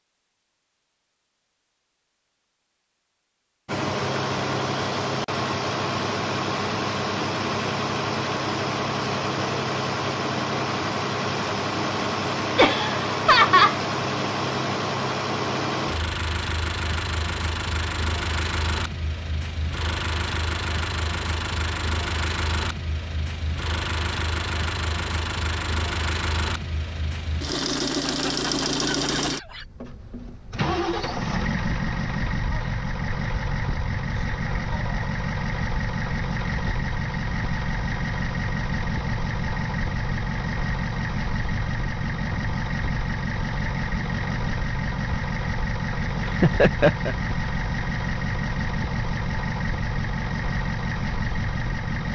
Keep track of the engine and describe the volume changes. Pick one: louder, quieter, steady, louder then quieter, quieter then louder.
steady.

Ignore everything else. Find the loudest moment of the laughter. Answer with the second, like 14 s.
13 s.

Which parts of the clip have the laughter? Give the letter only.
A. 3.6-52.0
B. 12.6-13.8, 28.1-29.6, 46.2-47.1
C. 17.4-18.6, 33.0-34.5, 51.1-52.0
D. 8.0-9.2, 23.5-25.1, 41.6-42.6
B.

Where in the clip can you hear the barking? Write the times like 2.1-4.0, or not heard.
not heard.